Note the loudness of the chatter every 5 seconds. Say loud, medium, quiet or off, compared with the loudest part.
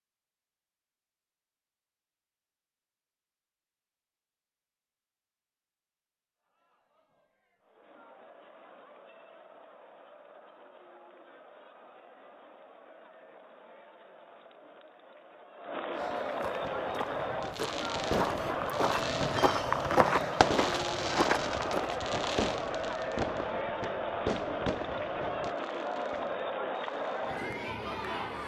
off, quiet, quiet, loud, loud, loud.